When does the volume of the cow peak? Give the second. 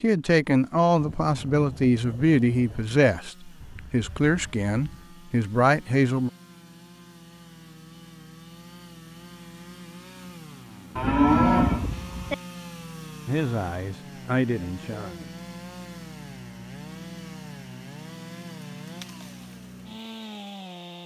11 s.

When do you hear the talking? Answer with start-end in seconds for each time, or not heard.
0.0-6.3, 13.2-15.3.